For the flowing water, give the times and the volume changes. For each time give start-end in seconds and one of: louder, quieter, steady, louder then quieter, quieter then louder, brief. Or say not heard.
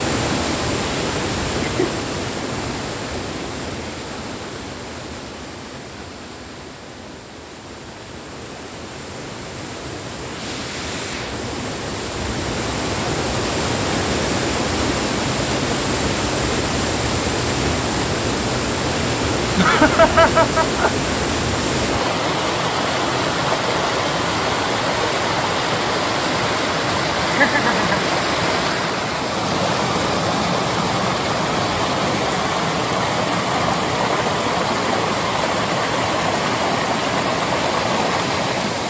0.0-38.8 louder.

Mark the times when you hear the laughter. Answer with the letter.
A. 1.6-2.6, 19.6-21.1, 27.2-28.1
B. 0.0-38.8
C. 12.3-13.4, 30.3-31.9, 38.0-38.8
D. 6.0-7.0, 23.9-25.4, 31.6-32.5
A.